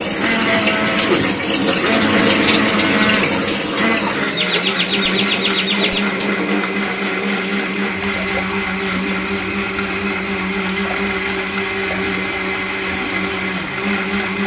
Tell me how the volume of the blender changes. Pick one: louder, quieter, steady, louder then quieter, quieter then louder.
steady.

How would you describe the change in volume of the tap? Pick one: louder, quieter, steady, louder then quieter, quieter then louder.
quieter.